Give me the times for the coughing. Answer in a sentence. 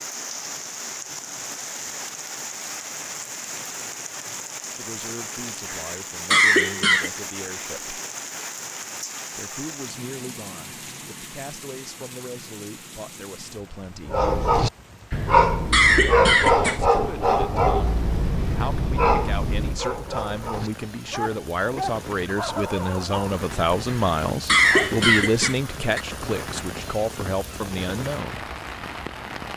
You can hear the coughing from 5.7 to 7.1 s, from 15.1 to 16.8 s and from 23.9 to 26.0 s.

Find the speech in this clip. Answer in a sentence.
You can hear the speech from 4.8 to 8.0 s, from 9.3 to 14.3 s and from 16.6 to 28.4 s.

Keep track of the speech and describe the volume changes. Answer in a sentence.
The loudness of the speech goes up.